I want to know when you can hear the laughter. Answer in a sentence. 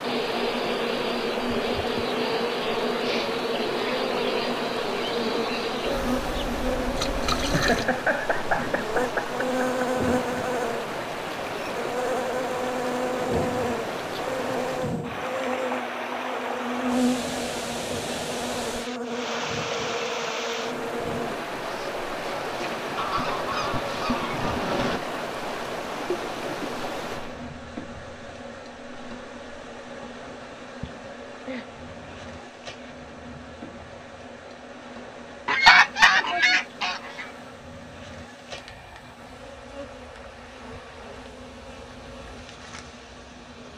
The laughter can be heard from 7.5 to 9.9 s and from 30.8 to 31.6 s.